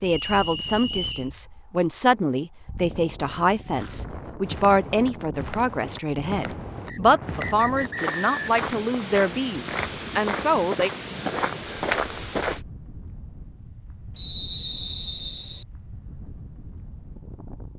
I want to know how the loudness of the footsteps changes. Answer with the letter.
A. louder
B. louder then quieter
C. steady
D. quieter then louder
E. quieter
A.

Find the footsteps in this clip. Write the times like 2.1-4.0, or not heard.
3.6-12.6.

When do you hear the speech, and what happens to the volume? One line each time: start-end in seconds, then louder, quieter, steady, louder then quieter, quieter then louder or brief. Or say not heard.
0.0-10.9 steady.